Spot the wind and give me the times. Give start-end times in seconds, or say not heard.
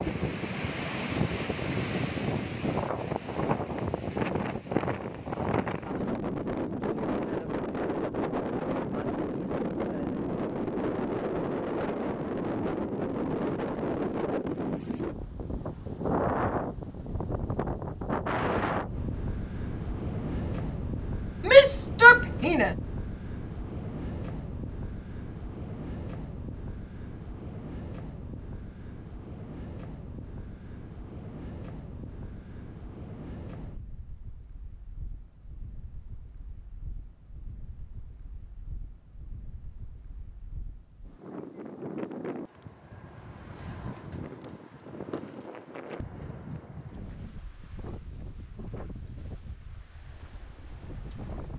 0.0-51.5.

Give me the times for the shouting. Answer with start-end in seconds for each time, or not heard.
21.4-22.8.